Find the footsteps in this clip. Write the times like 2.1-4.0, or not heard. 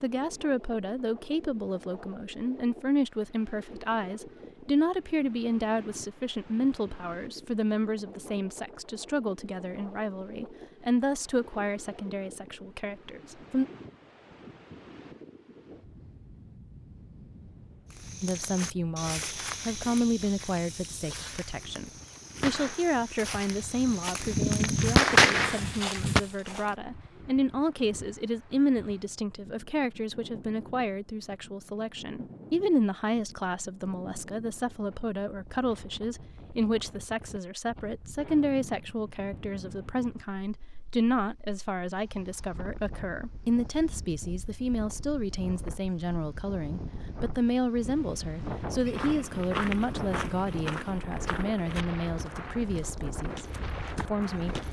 17.9-26.8, 48.7-54.6.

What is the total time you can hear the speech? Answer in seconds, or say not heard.
50 s.